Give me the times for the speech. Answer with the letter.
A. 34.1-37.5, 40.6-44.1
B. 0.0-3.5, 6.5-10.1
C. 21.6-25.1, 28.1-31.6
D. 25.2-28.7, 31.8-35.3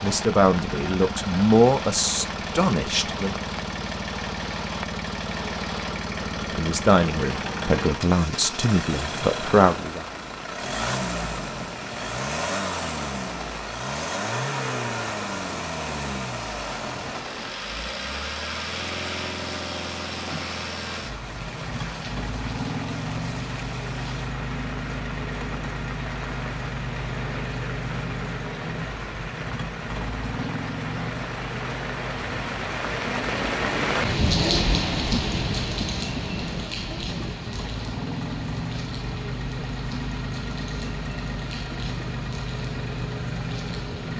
B.